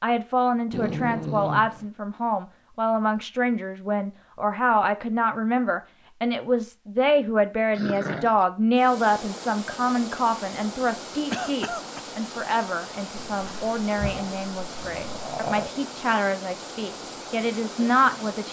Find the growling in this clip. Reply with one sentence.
You can hear the growling from 0.7 to 1.9 s, from 7.8 to 8.3 s and from 13.2 to 15.8 s.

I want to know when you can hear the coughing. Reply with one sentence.
The coughing can be heard from 11.3 to 12.0 s.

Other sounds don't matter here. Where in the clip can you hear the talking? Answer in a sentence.
The talking can be heard from 0.0 to 18.4 s.